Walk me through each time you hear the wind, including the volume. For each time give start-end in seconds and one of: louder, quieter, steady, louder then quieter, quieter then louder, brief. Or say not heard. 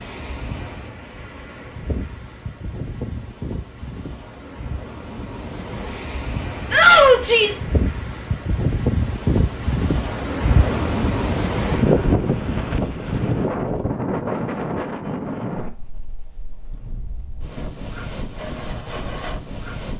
0.0-19.9 louder then quieter.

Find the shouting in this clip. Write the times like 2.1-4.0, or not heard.
6.7-7.7.